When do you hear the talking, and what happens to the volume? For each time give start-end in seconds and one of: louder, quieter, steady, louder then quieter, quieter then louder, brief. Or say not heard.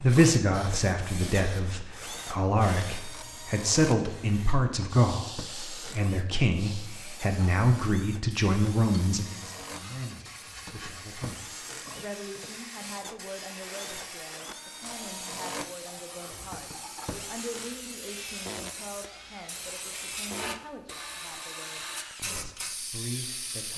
0.0-23.7 quieter.